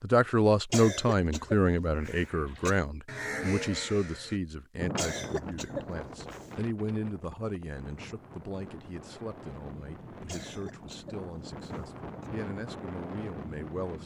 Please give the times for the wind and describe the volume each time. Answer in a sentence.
The wind can be heard from 4.8 to 14.0 s, getting quieter then louder.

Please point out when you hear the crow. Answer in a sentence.
You can hear the crow from 1.9 to 4.4 s.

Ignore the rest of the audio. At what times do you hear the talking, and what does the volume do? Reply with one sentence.
The talking can be heard from 0.0 to 14.0 s, getting quieter.